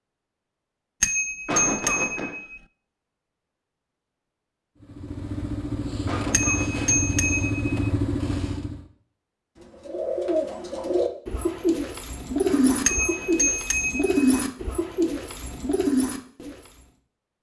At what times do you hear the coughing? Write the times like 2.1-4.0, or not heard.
1.4-2.4, 6.0-7.0, 12.4-13.4.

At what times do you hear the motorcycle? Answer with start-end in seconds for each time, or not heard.
4.8-8.9.